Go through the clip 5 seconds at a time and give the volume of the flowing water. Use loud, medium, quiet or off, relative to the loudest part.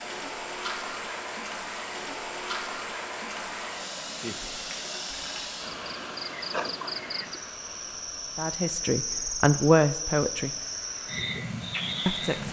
loud, medium, medium.